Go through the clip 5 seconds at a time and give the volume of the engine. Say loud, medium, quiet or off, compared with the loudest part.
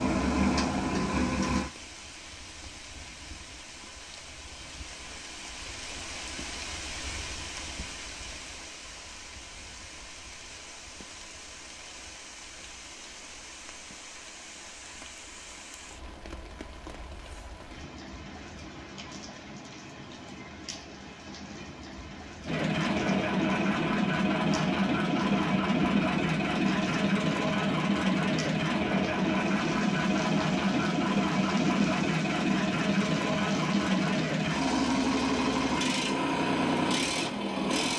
loud, off, off, off, loud, loud, loud, loud.